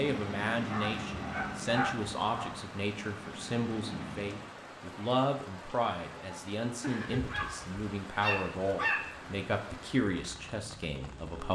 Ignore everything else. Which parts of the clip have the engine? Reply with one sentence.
You can hear the engine from 0.0 to 4.6 s.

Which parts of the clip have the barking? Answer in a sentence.
The barking can be heard from 0.7 to 2.6 s and from 6.8 to 9.3 s.